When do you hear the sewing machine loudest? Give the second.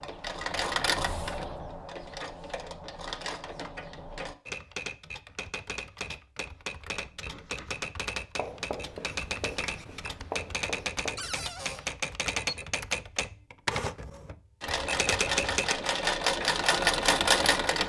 17 s.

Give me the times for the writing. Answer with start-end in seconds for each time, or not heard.
7.0-12.0.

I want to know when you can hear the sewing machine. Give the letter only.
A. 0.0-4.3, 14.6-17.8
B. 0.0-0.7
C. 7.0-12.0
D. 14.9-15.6
A.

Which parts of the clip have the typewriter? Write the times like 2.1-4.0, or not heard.
4.5-15.8.